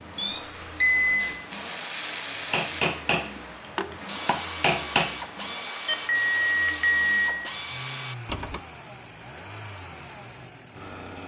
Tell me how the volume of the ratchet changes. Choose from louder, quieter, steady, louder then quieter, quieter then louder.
steady.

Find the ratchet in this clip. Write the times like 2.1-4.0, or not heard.
1.1-8.6.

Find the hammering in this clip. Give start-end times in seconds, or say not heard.
2.4-5.0.